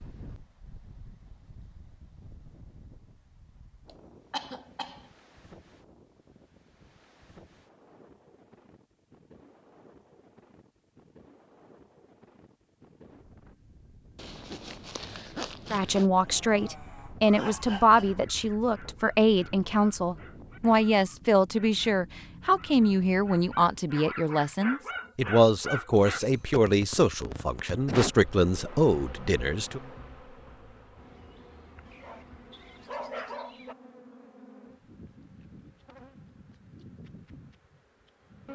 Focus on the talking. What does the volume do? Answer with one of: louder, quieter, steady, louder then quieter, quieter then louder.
steady.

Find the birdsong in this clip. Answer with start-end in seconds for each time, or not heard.
not heard.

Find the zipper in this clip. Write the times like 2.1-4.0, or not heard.
14.2-16.1.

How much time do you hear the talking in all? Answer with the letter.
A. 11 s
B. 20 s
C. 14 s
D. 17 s
C.